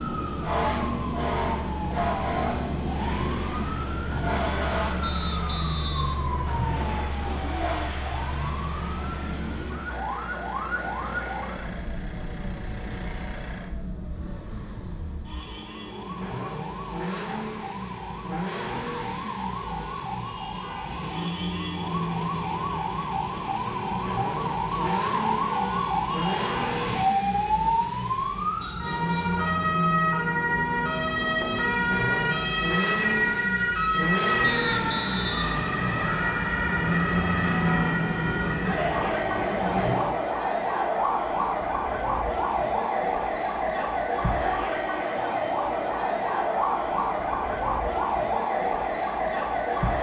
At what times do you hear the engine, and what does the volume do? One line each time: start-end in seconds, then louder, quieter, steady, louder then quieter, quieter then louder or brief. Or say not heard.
2.8-40.2 louder.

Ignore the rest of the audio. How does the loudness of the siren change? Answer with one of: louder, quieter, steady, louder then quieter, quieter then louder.
quieter then louder.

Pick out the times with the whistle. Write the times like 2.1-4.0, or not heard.
5.0-7.0, 28.6-29.4, 34.4-36.1.